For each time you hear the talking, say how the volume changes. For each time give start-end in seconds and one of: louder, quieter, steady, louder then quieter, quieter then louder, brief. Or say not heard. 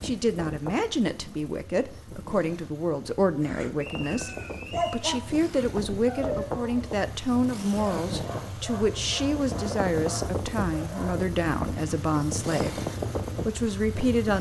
0.0-12.8 steady
13.4-14.3 brief.